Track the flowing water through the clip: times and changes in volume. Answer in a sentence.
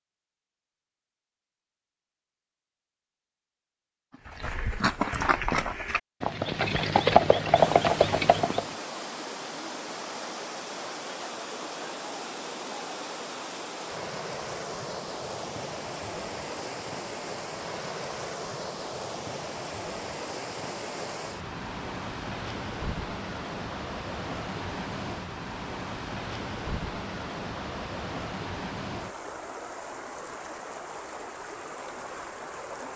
The flowing water can be heard from 7.5 to 32.9 s, at a steady volume.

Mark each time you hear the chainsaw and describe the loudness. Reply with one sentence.
You can't hear the chainsaw here.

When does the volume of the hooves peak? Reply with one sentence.
The loudest moment of the hooves is at 7 seconds.